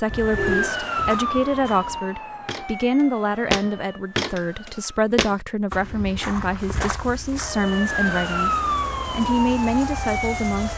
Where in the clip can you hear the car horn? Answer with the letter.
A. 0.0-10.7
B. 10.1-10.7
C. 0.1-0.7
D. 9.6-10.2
C.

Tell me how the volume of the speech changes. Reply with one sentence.
The volume of the speech stays about the same.